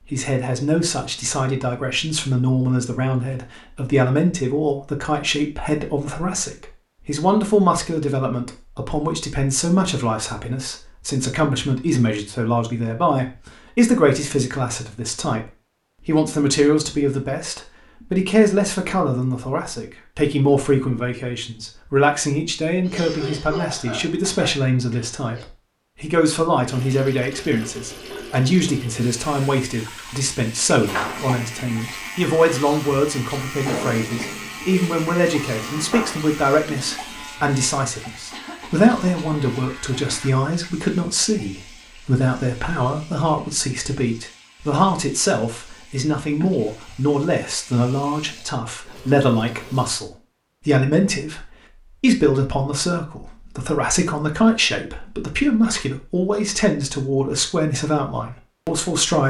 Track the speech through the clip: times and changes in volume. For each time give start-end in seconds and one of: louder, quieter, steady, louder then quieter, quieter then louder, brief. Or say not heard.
0.0-59.2 steady.